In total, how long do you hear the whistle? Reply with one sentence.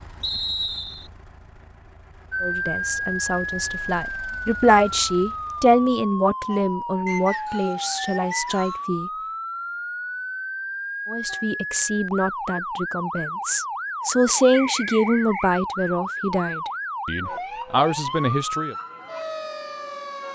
The whistle can be heard for 4 seconds in total.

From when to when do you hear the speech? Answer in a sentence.
You can hear the speech from 2.4 to 9.1 s and from 11.1 to 18.8 s.